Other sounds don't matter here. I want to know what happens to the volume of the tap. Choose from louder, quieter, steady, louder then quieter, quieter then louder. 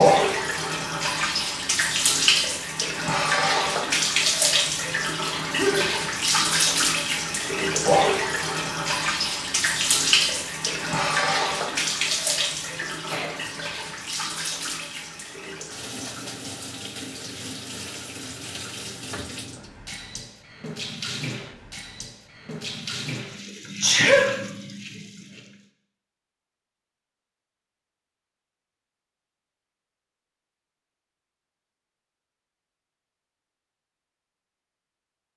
quieter.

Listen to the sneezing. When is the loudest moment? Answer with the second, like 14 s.
24 s.